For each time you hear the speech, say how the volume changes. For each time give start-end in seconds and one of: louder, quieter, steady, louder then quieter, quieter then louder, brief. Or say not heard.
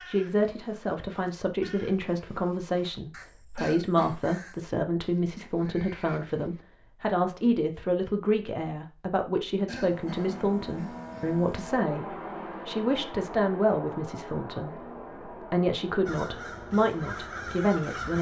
0.1-18.1 steady.